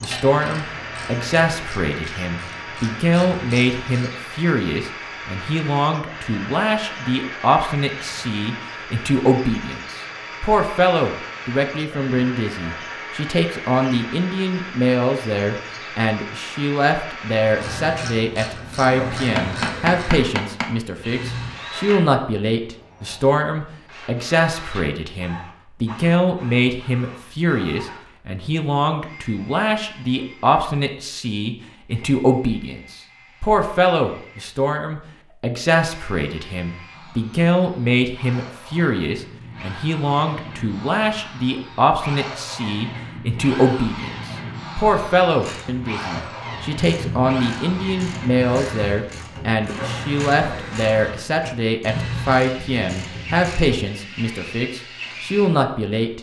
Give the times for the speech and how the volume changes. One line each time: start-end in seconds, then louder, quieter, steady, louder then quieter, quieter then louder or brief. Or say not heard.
0.0-56.1 steady.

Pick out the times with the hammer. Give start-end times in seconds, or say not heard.
19.2-20.7.